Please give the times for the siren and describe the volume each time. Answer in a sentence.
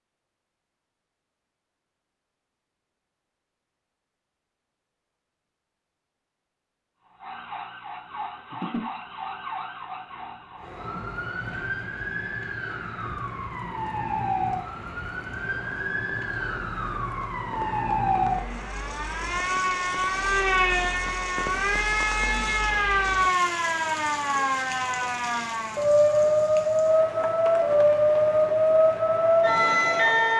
You can hear the siren from 7.1 to 30.3 s, getting louder.